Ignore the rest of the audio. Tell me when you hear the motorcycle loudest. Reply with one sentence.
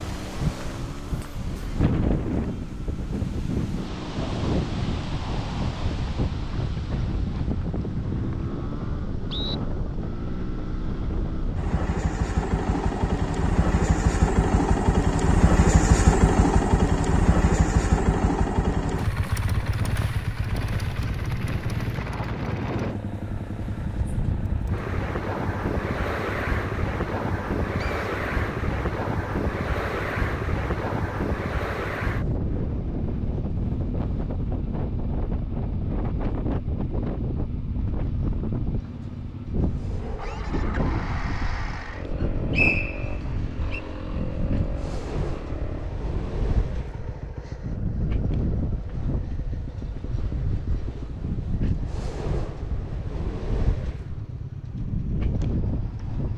The loudest moment of the motorcycle is at 16 seconds.